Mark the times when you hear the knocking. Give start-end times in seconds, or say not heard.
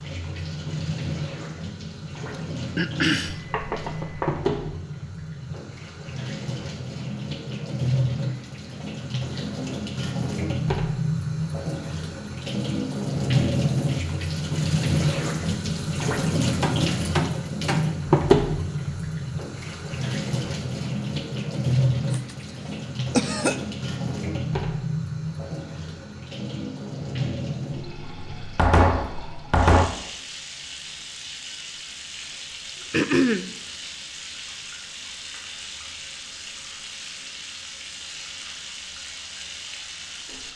3.3-4.4, 16.6-17.9, 28.6-29.9.